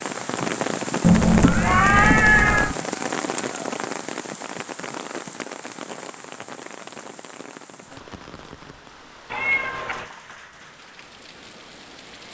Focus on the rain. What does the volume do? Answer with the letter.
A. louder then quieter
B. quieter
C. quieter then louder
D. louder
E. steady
B.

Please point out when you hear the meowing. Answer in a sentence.
The meowing can be heard from 1.0 to 2.8 s and from 9.3 to 10.1 s.